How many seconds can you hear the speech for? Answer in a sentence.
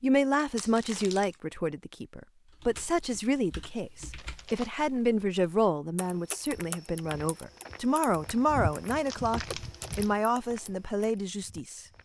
You can hear the speech for 12 seconds altogether.